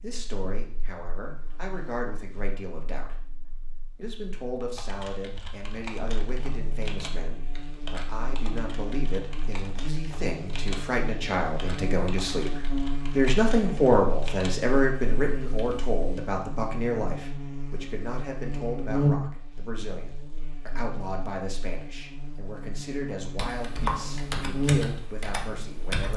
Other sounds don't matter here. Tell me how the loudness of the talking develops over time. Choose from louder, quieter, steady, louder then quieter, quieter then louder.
louder then quieter.